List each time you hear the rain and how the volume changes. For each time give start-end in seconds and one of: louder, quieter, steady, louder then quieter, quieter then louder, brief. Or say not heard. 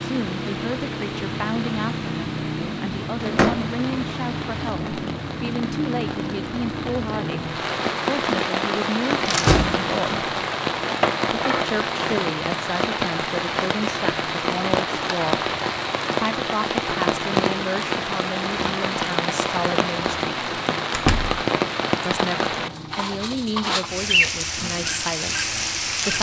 0.0-26.1 louder.